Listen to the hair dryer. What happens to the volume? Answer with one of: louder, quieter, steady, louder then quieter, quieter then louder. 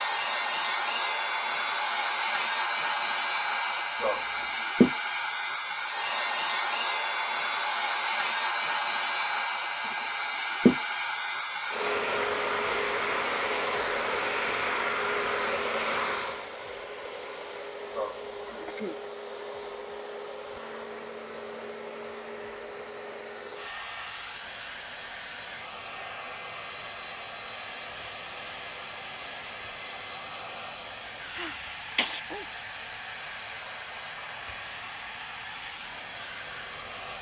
quieter.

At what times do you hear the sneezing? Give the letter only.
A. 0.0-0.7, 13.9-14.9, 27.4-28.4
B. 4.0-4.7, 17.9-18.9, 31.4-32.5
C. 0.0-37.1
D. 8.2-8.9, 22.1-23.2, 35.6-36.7
B.